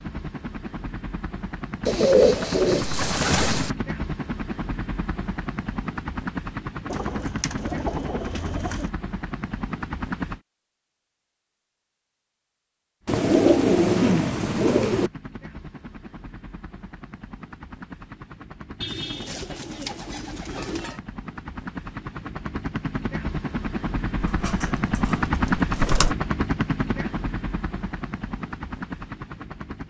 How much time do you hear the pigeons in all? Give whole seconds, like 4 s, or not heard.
10 s.